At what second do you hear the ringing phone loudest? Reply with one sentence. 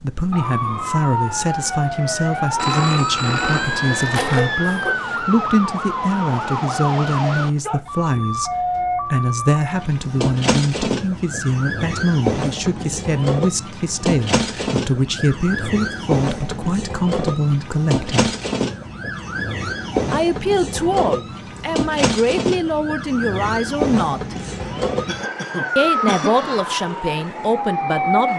The loudest moment of the ringing phone is at 3 seconds.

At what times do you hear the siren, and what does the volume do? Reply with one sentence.
You can hear the siren from 0.0 to 28.3 s, at a steady volume.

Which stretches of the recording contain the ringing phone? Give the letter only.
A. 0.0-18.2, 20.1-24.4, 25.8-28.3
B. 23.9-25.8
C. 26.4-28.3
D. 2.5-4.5
D.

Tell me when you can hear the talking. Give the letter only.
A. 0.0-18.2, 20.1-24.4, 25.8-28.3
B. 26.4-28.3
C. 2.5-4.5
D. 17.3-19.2
A.